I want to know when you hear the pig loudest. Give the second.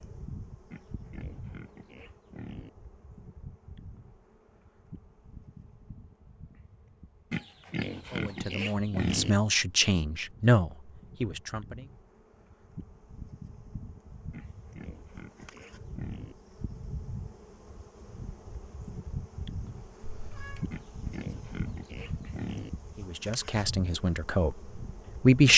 9 s.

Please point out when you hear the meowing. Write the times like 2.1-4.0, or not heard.
20.0-20.8.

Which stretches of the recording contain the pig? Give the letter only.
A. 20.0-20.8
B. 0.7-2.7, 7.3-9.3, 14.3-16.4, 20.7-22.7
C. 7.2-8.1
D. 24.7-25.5
B.